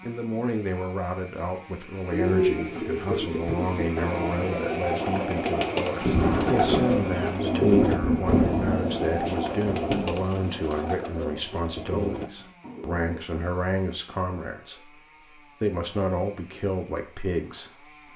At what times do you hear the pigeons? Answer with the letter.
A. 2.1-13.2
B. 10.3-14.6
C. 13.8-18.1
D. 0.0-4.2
A.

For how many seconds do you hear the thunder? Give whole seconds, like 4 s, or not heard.
4 s.